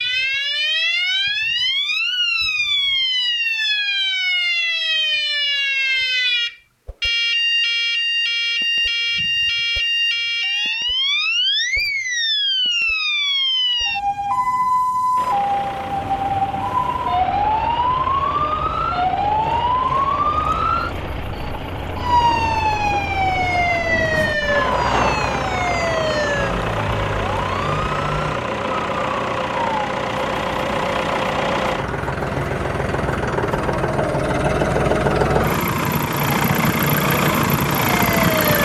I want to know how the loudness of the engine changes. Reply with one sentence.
The loudness of the engine goes up.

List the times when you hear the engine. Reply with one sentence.
The engine can be heard from 15.2 to 38.6 s.